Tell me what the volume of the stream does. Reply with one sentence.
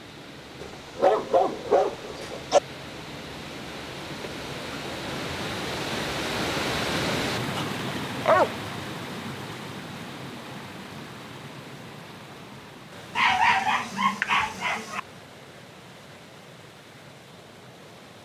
The loudness of the stream goes up, then down.